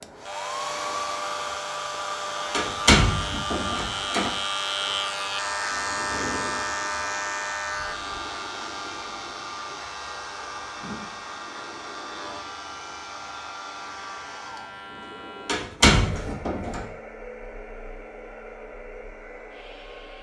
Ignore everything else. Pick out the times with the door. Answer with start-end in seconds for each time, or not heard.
2.5-4.3, 15.4-16.8.